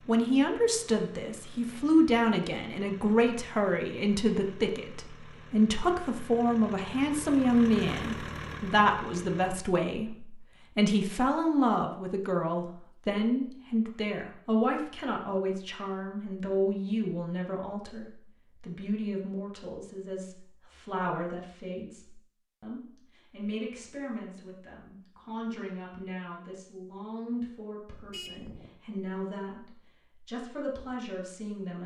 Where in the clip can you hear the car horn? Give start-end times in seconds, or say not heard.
27.9-28.8.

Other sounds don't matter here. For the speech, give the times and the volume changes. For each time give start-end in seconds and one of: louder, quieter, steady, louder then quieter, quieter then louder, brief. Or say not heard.
0.1-31.8 quieter.